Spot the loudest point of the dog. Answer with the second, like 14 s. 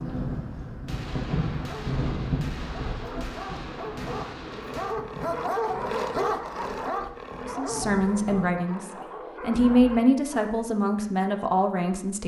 6 s.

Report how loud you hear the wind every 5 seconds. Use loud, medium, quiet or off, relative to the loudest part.
loud, medium, off.